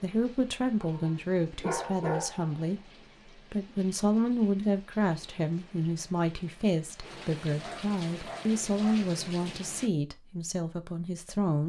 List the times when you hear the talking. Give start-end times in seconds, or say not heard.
0.0-11.6.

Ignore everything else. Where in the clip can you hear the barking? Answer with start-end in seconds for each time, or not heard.
0.8-2.8, 7.6-9.1.